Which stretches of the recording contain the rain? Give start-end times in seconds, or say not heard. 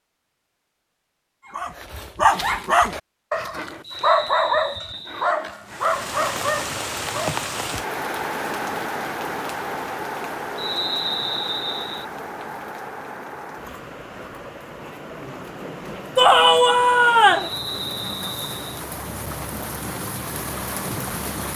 5.7-21.5.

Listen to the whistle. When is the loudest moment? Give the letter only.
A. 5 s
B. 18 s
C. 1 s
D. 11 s
D.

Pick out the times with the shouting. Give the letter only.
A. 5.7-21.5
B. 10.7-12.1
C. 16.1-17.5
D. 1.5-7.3
C.